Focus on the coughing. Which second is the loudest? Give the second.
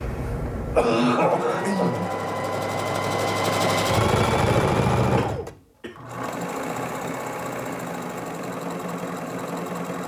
1 s.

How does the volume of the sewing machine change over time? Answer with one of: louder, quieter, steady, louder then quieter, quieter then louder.
louder then quieter.